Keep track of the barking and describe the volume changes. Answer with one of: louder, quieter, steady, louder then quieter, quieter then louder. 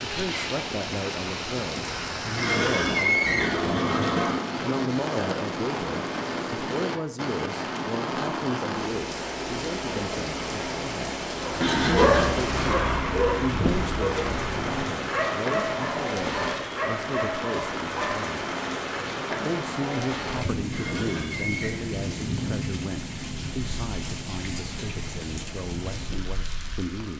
quieter.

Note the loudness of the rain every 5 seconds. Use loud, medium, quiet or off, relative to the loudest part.
loud, loud, loud, loud, loud, medium.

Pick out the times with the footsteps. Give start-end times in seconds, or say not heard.
not heard.